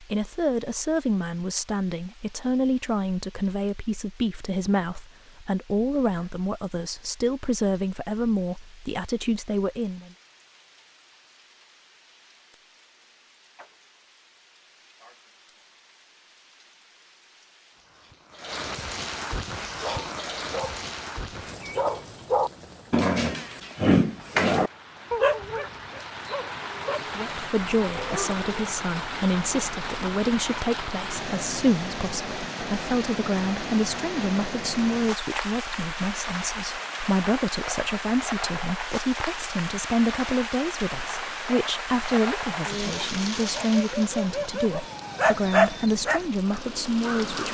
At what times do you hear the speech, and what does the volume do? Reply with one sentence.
The speech can be heard from 0.0 to 10.1 s, at a steady volume; and from 27.1 to 47.5 s, at a steady volume.